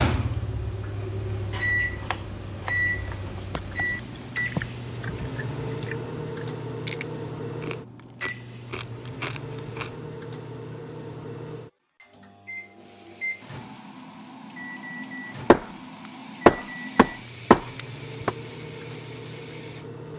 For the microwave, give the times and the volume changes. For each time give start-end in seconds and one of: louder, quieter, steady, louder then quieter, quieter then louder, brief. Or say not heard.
0.0-20.1 quieter.